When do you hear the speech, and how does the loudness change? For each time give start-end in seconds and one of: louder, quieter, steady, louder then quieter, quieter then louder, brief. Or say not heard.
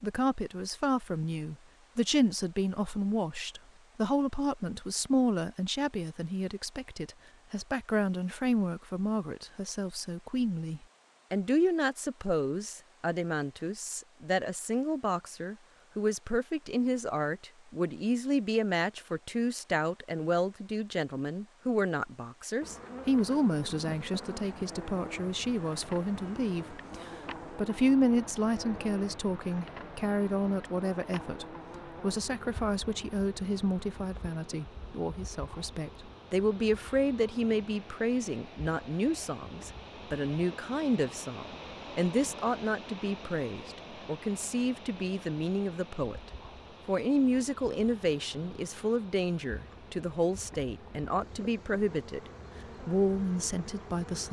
0.0-46.2 steady
46.9-54.2 steady.